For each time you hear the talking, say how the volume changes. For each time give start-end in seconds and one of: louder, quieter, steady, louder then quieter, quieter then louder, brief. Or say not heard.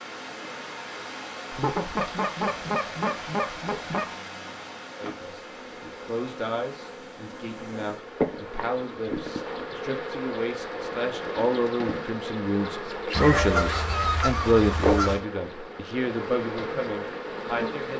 5.0-17.9 louder then quieter.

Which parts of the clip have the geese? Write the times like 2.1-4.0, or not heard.
1.5-4.0, 13.1-15.2.